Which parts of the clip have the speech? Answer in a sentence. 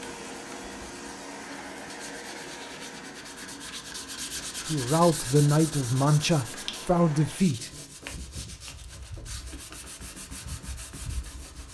The speech can be heard from 4.7 to 7.7 s.